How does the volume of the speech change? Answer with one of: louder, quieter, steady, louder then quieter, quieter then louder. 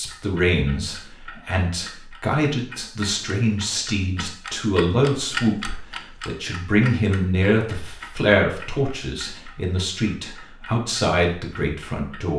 steady.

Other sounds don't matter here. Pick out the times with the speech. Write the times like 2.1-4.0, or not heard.
0.0-12.3.